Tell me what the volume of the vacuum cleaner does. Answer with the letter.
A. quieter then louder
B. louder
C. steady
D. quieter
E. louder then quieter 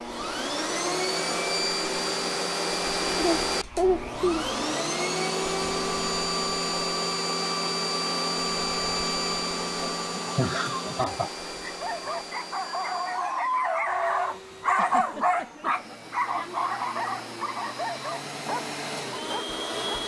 A.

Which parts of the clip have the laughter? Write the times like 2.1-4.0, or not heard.
3.1-4.5, 9.8-11.7, 14.7-15.9.